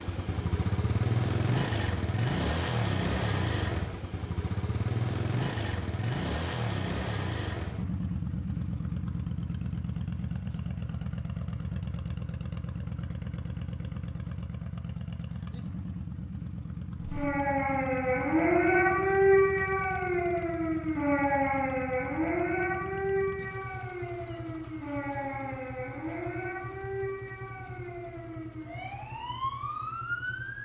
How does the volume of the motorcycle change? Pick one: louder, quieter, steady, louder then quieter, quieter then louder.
quieter.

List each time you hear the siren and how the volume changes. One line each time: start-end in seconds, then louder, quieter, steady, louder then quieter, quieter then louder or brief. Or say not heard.
17.0-30.6 quieter.